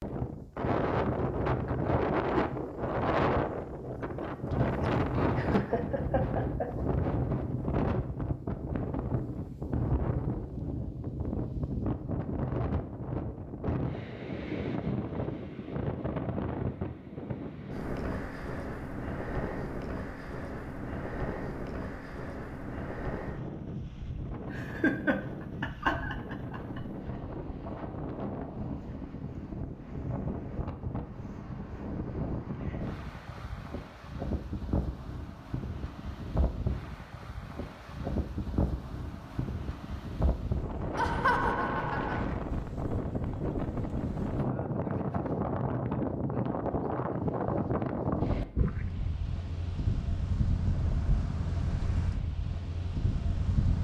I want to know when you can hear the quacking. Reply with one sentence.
The quacking can't be heard in this clip.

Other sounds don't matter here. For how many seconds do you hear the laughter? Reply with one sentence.
The laughter can be heard for 5 seconds in total.